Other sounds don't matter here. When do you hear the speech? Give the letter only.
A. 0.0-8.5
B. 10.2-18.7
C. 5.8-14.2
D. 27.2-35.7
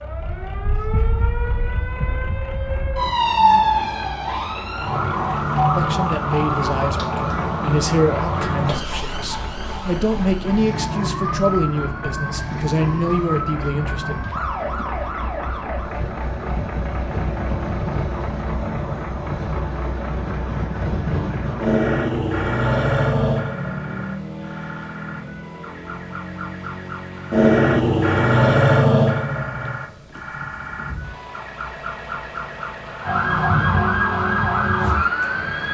C.